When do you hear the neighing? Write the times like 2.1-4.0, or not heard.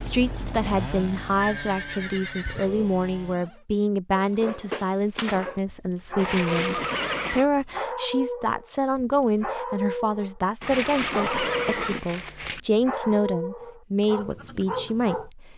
1.4-2.9, 6.2-7.5, 10.6-12.6.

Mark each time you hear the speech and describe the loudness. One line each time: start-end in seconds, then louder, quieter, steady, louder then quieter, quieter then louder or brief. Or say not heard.
0.0-15.5 steady.